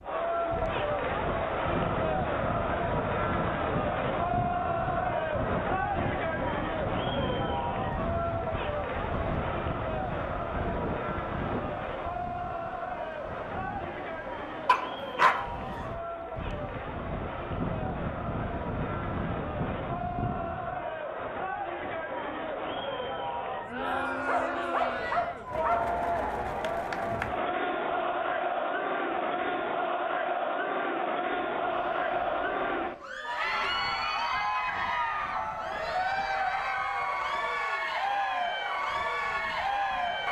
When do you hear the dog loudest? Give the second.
15 s.